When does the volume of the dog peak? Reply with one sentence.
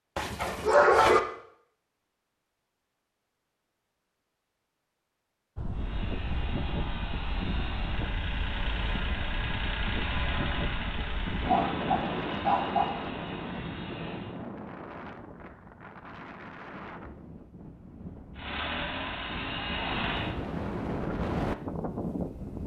The loudest moment of the dog is at 1 second.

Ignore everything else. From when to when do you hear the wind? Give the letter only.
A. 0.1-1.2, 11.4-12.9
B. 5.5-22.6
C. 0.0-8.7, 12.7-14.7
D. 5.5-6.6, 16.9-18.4
B.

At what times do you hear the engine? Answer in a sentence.
You can hear the engine from 5.7 to 14.3 s and from 18.4 to 20.4 s.